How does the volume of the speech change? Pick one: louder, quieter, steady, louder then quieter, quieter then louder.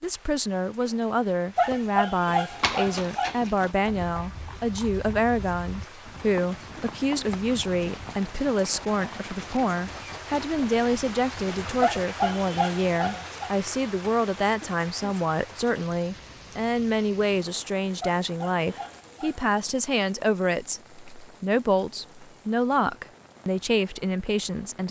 steady.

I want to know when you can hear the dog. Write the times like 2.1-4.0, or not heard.
1.6-3.3, 11.8-13.5, 18.0-19.4.